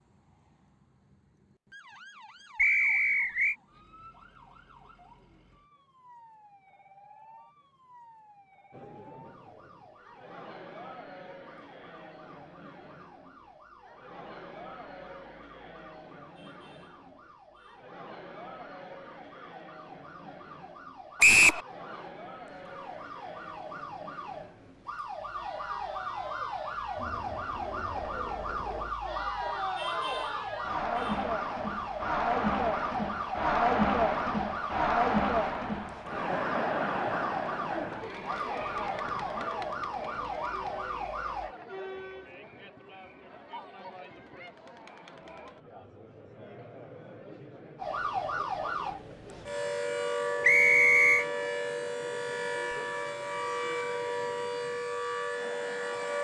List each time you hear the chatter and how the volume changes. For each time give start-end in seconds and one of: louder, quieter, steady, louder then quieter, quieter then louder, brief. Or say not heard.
8.7-56.2 louder then quieter.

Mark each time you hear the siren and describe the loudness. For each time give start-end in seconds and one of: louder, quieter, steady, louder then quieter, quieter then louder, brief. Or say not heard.
0.0-41.5 louder
47.8-56.2 steady.